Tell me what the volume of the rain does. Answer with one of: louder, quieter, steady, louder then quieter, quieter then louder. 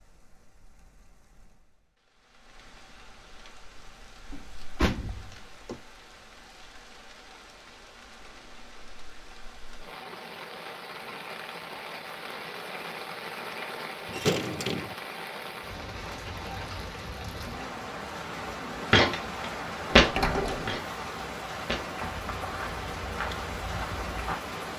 louder.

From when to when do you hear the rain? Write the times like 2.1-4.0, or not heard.
0.0-24.7.